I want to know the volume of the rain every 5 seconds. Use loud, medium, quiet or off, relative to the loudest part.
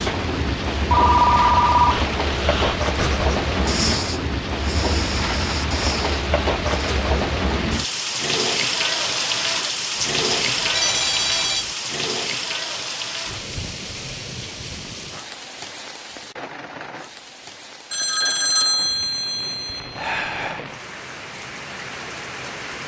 loud, loud, loud, quiet, medium.